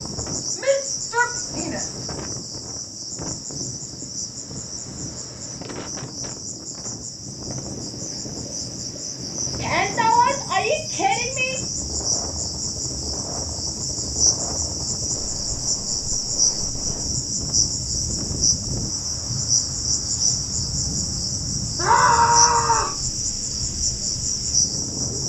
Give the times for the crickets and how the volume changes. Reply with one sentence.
The crickets can be heard from 0.0 to 25.2 s, getting louder.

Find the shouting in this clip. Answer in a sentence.
You can hear the shouting from 0.6 to 1.9 s, from 9.6 to 11.6 s and from 21.8 to 22.9 s.